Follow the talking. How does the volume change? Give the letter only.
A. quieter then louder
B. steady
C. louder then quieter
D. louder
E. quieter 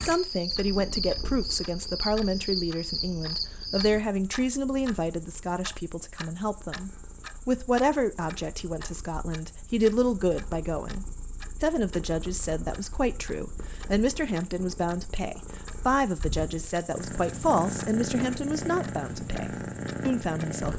B.